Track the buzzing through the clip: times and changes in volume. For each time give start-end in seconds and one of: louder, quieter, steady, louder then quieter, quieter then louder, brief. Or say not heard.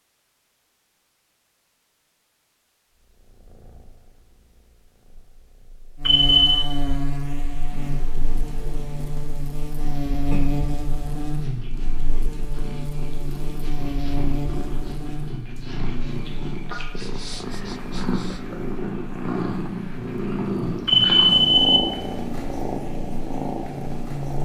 6.0-24.4 quieter then louder.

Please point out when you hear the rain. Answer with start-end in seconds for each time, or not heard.
not heard.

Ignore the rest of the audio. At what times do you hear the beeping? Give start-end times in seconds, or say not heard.
6.0-6.7, 20.9-21.8.